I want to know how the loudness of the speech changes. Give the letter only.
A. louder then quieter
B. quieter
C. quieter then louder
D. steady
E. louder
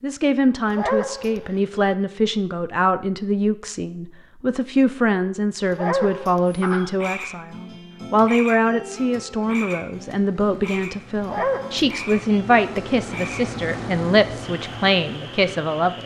D.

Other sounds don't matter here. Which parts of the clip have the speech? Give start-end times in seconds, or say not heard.
0.0-16.0.